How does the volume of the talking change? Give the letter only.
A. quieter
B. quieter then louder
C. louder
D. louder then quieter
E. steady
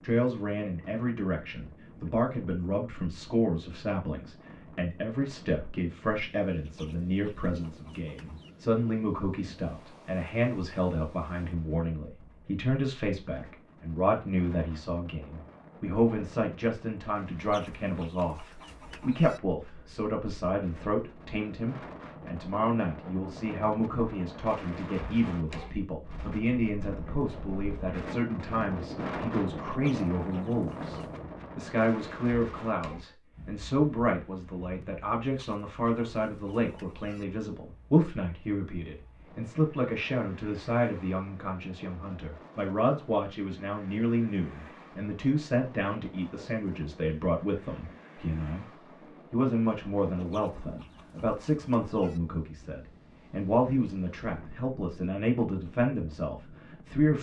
E.